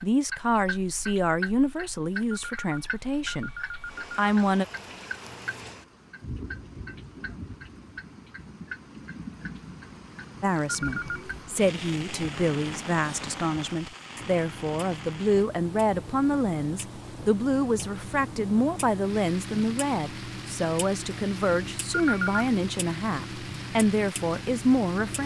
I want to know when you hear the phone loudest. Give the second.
22 s.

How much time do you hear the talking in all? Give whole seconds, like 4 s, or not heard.
19 s.